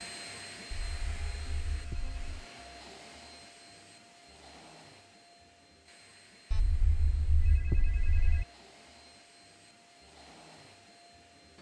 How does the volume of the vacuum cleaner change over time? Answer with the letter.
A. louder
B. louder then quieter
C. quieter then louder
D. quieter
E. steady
D.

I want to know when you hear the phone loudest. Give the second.
8 s.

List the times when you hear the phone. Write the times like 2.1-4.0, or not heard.
0.7-2.3, 6.5-8.4.